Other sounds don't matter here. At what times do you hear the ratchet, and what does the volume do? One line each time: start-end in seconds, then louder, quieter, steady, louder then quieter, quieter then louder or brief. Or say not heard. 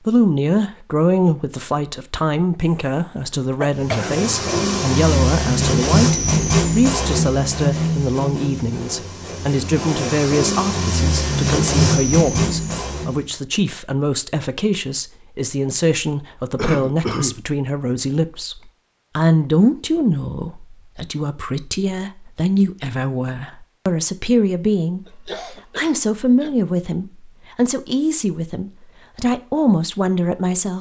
not heard.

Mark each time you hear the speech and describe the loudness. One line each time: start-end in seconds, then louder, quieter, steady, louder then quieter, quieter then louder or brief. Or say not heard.
0.1-30.7 steady.